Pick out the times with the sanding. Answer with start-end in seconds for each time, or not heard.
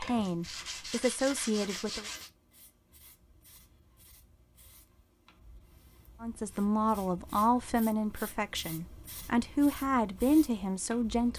0.0-2.3.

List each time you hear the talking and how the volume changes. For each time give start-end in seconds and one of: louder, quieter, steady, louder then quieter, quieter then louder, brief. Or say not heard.
0.0-2.0 brief
6.2-11.3 quieter then louder.